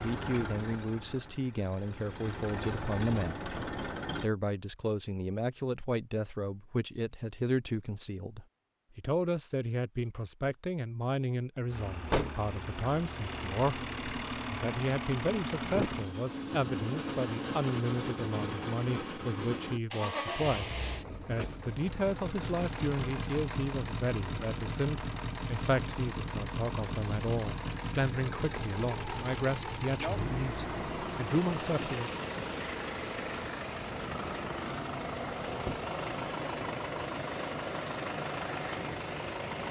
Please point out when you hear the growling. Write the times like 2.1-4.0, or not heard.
not heard.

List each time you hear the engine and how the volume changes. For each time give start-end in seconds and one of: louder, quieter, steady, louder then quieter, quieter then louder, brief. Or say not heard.
0.0-4.3 quieter then louder
11.7-39.6 steady.